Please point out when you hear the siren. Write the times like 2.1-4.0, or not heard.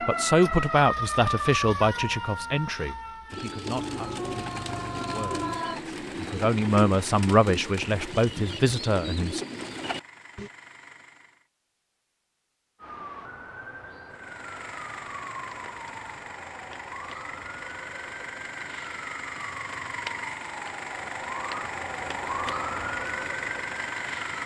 0.0-5.8, 12.8-24.4.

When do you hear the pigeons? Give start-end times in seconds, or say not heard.
3.3-10.5.